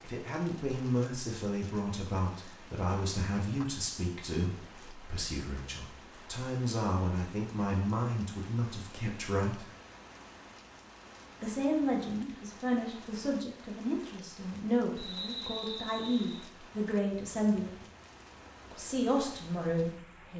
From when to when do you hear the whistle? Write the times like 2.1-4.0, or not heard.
14.9-16.4.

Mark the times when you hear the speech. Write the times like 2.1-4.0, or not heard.
0.0-9.7, 11.4-17.8, 18.7-20.3.